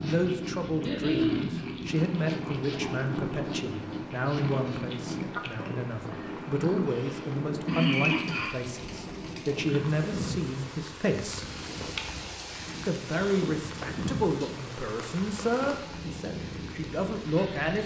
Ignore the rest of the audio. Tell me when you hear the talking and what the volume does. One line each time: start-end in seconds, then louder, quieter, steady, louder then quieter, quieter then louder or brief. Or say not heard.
0.0-11.4 steady
12.8-17.8 quieter then louder.